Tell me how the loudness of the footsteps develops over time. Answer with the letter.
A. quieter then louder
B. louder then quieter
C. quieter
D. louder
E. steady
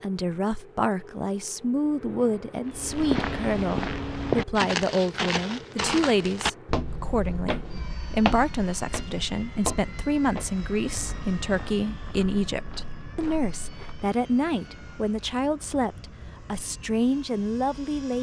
C.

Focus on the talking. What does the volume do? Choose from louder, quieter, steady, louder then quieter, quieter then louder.
steady.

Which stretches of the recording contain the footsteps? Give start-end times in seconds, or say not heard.
2.6-14.1.